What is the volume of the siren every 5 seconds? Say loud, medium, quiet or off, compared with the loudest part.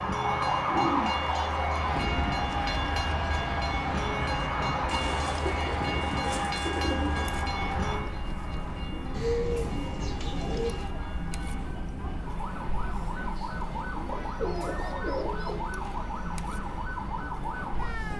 loud, medium, medium, loud.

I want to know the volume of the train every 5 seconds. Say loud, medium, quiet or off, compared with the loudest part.
loud, loud, quiet, quiet.